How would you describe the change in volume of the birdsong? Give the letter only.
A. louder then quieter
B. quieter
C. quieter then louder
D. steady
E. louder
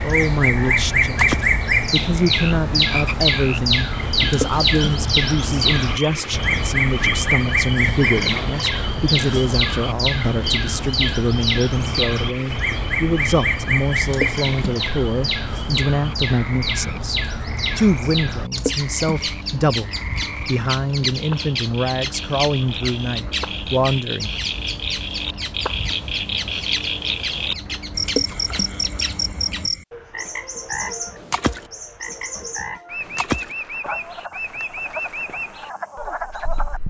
B.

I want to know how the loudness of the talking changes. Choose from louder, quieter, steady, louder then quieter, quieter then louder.
steady.